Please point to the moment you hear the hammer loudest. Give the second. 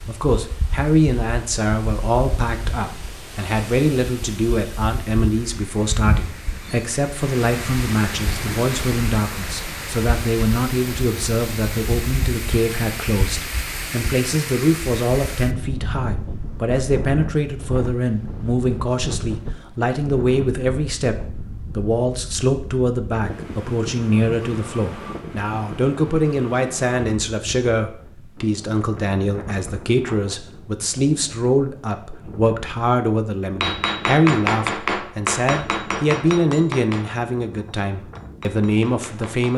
34 s.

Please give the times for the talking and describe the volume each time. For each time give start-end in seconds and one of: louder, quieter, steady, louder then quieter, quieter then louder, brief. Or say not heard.
0.1-39.5 steady.